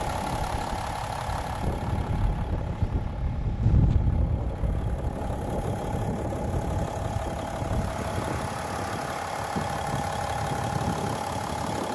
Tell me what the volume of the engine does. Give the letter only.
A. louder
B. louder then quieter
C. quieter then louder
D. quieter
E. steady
C.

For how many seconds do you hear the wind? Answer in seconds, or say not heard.
12 s.